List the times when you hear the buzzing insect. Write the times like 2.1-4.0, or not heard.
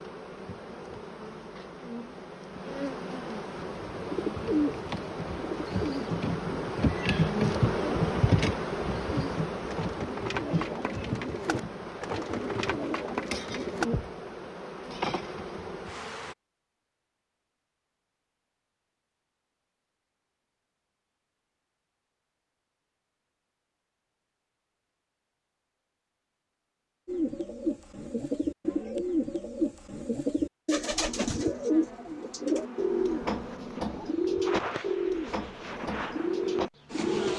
0.0-16.4, 31.1-37.3.